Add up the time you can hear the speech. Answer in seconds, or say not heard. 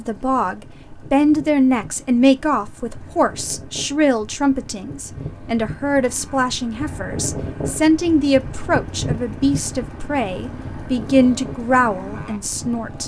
13 s.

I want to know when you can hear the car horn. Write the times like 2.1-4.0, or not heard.
not heard.